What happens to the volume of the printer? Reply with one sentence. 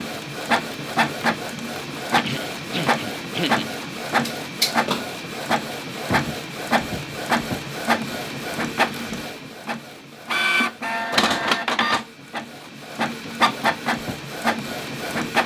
The loudness of the printer stays about the same.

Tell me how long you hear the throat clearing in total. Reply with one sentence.
The throat clearing can be heard for 2 seconds in total.